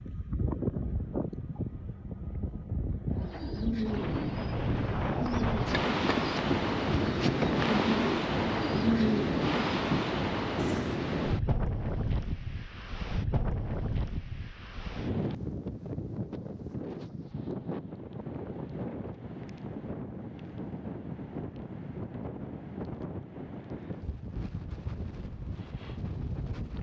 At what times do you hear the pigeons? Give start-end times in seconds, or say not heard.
3.1-11.0.